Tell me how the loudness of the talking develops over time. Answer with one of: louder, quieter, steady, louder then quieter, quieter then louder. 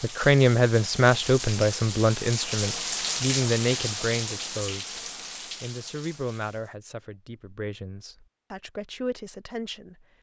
quieter.